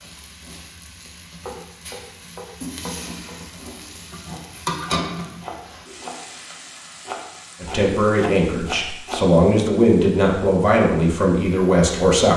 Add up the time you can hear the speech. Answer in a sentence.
The speech can be heard for 5 seconds in total.